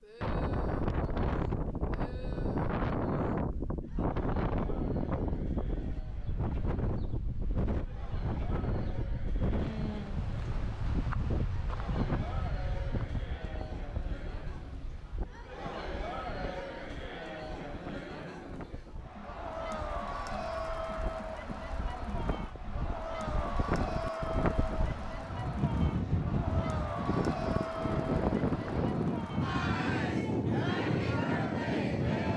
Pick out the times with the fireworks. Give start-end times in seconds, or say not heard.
not heard.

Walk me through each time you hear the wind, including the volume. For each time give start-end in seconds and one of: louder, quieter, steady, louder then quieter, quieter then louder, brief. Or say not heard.
0.2-32.3 quieter then louder.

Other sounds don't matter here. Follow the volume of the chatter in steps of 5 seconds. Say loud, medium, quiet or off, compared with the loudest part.
quiet, quiet, medium, loud, loud, loud, loud.